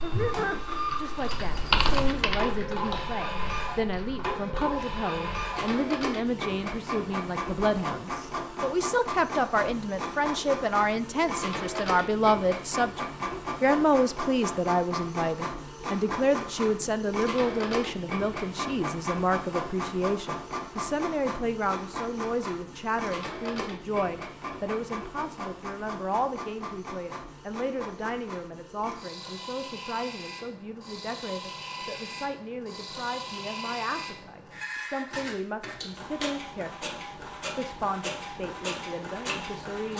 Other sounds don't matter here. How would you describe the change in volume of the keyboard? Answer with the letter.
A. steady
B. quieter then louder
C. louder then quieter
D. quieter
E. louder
C.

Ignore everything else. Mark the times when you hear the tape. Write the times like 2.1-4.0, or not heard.
not heard.